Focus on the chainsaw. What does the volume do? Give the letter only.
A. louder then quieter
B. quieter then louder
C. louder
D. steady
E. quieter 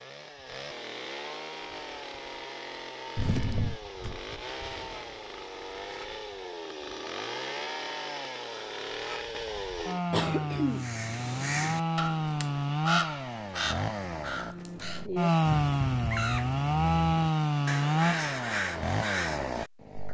C.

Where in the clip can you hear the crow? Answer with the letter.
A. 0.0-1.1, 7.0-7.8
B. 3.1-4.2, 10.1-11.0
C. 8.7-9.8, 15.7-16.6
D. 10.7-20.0
D.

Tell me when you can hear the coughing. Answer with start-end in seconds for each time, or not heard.
3.1-4.2, 10.1-11.0.